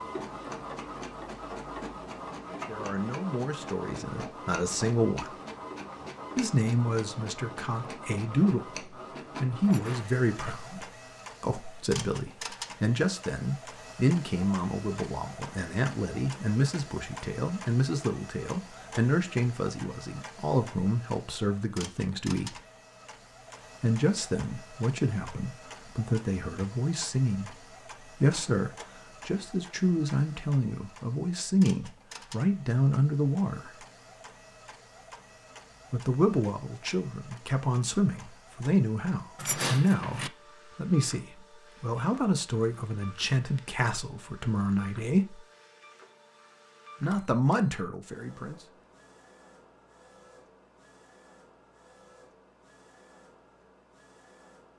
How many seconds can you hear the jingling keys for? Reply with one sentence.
You can hear the jingling keys for 2 seconds altogether.